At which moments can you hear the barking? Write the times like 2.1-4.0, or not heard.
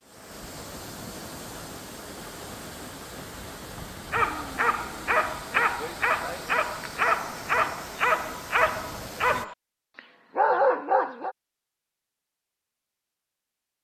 4.1-11.3.